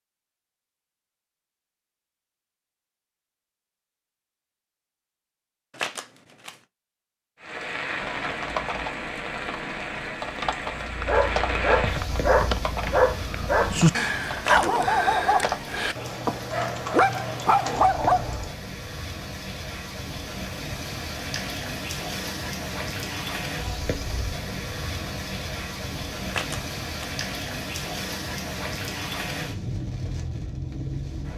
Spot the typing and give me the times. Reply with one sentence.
The typing can be heard from 8.0 to 18.6 s.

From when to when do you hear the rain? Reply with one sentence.
You can hear the rain from 7.4 to 31.3 s.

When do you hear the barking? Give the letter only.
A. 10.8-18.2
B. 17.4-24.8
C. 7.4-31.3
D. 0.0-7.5
A.